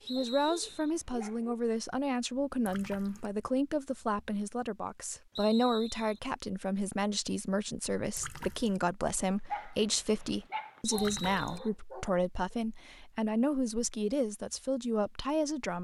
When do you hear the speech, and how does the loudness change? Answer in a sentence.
The speech can be heard from 0.1 to 15.7 s, at a steady volume.